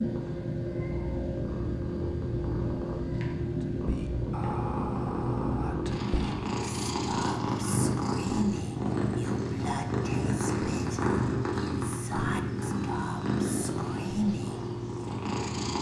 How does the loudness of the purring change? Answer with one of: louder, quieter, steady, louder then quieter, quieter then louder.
steady.